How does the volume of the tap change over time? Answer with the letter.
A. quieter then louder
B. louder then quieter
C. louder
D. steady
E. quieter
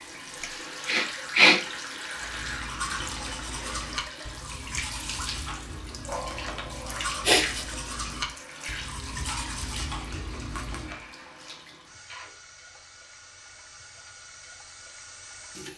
E.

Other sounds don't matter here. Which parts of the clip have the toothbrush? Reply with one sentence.
The toothbrush can be heard from 2.2 to 11.0 s.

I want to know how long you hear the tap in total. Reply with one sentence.
You can hear the tap for 16 seconds altogether.